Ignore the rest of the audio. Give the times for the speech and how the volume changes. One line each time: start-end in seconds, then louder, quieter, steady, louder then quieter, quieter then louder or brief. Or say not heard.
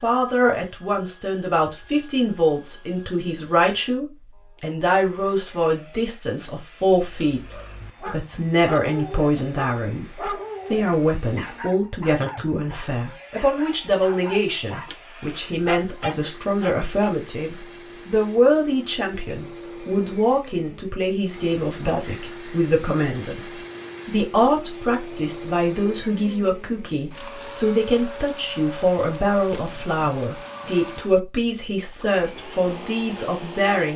0.0-33.9 steady.